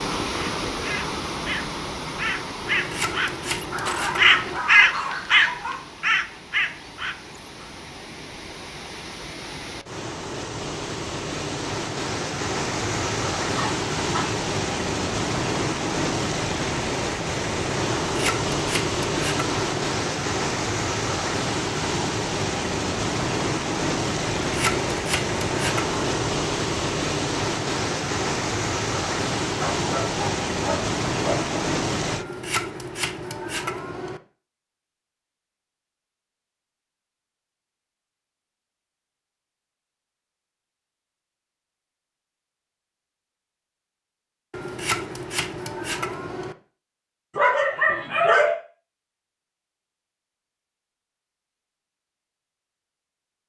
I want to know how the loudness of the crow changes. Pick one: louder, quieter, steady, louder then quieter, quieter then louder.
louder then quieter.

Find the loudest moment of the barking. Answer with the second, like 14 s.
48 s.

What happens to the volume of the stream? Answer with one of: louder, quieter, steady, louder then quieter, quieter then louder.
louder.